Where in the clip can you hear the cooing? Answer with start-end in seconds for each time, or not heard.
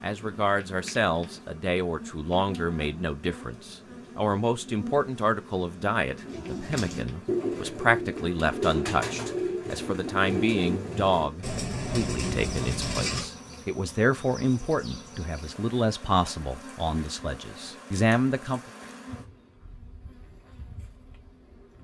6.2-13.3.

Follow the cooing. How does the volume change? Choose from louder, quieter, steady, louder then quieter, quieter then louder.
steady.